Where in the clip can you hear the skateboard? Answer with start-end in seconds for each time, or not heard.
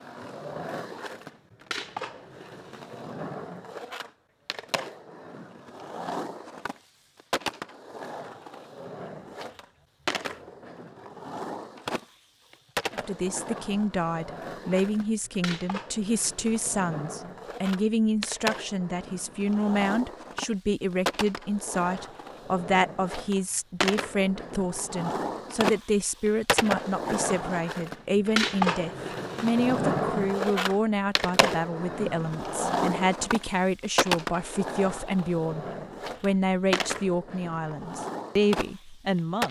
0.0-39.4.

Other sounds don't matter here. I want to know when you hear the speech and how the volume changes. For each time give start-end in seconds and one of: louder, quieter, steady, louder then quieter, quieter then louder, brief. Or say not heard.
12.9-39.4 steady.